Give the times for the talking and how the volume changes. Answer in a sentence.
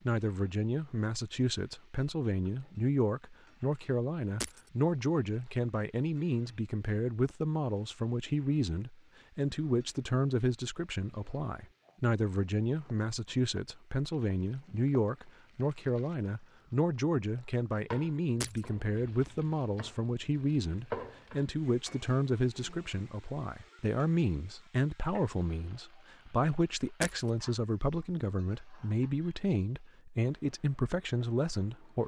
The talking can be heard from 0.1 to 32.0 s, at a steady volume.